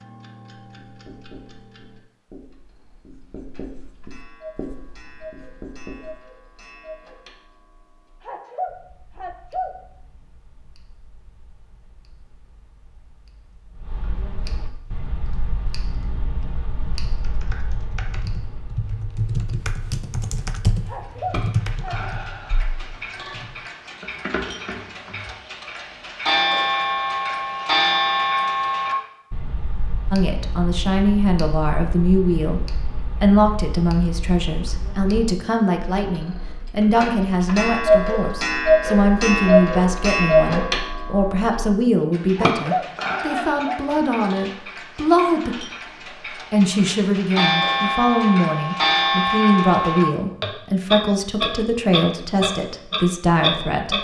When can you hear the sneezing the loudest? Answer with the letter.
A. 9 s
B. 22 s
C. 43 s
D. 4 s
C.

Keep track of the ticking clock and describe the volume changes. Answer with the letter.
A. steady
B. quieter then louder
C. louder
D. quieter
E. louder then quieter
C.